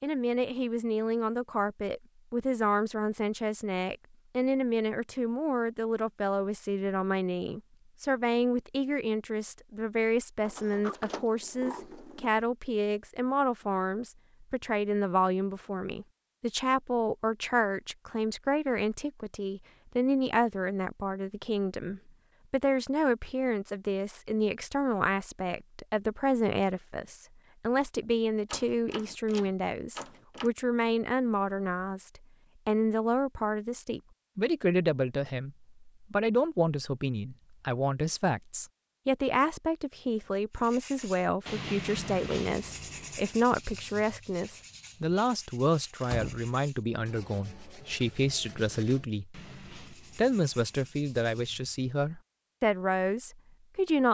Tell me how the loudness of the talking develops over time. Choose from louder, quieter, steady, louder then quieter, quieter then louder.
steady.